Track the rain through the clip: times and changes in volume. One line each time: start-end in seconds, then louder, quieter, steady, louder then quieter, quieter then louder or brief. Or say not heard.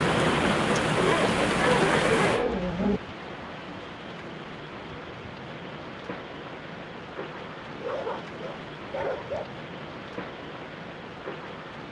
0.0-11.8 quieter.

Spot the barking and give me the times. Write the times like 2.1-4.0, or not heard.
0.9-3.0, 7.8-9.6.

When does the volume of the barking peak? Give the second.
2 s.